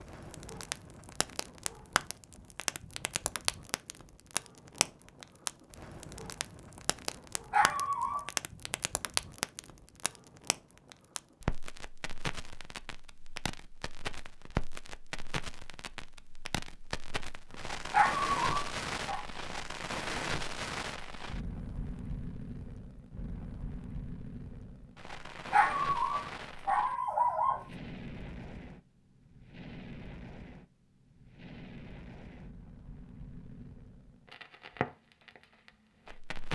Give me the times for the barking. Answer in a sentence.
The barking can be heard from 7.5 to 8.3 s, from 17.9 to 19.2 s and from 25.5 to 27.6 s.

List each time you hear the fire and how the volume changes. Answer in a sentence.
The fire can be heard from 0.0 to 36.5 s, getting quieter.